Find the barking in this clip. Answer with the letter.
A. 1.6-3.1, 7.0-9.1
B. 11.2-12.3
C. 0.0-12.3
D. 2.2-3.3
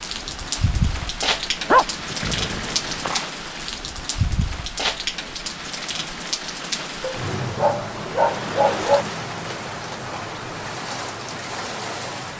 A.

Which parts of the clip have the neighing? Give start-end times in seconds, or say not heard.
2.2-3.3.